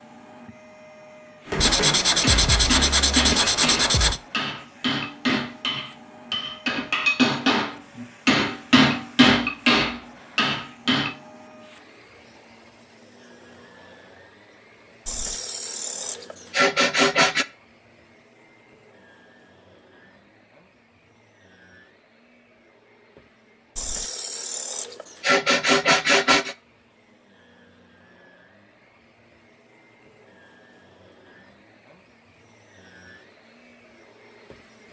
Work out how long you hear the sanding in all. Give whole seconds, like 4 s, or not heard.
8 s.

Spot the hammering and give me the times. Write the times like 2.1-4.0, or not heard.
1.4-11.1.